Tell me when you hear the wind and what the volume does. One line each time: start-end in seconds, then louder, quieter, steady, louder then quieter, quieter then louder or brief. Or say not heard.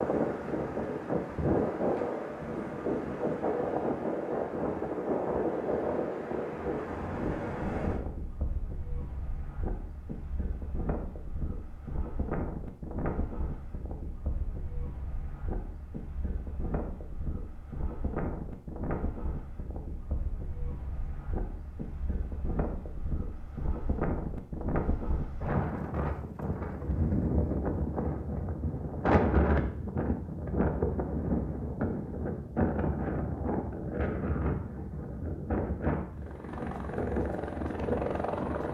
0.0-38.6 quieter then louder.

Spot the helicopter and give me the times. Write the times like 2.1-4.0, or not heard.
36.1-38.6.